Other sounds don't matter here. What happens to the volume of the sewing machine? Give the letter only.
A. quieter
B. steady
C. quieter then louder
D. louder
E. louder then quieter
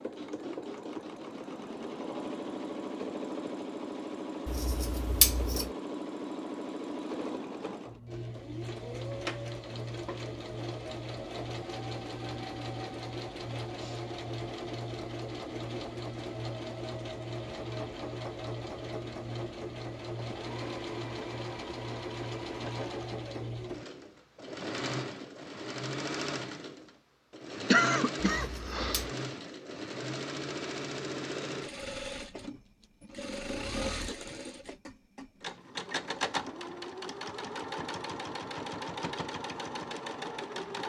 B.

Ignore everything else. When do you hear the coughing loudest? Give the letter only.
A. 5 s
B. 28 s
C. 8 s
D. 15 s
B.